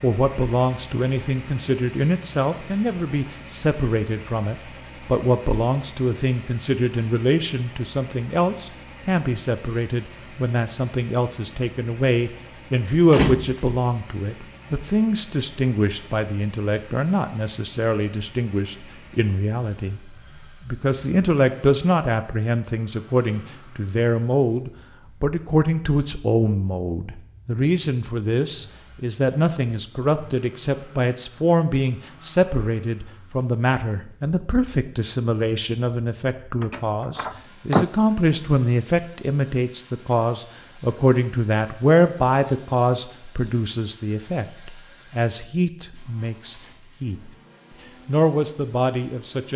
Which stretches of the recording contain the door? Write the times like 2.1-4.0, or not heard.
13.1-13.8, 36.6-37.9.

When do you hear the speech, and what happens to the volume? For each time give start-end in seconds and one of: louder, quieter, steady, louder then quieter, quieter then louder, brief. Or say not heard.
0.0-47.3 steady
48.0-49.5 brief.